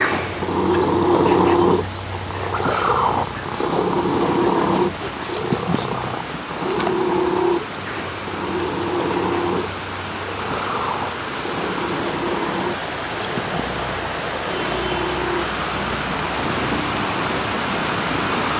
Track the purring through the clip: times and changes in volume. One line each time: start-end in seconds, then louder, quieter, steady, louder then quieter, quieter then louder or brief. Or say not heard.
0.0-18.5 quieter.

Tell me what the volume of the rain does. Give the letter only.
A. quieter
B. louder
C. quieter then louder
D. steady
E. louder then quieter
B.